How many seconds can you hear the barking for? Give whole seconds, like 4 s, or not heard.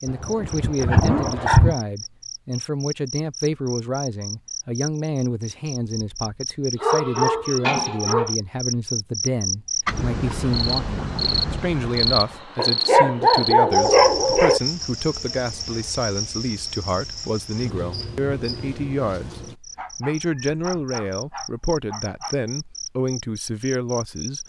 8 s.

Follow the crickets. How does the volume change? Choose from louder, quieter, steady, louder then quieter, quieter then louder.
louder then quieter.